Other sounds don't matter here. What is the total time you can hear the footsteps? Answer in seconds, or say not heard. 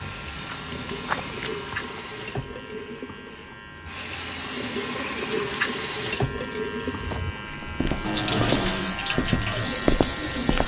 6 s.